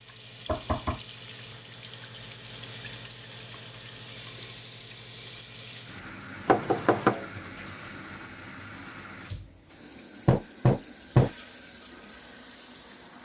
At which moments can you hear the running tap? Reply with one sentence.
You can hear the running tap from 0.0 to 13.2 s.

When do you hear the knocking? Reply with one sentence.
You can hear the knocking from 0.5 to 1.0 s, from 6.5 to 7.2 s and from 10.2 to 11.3 s.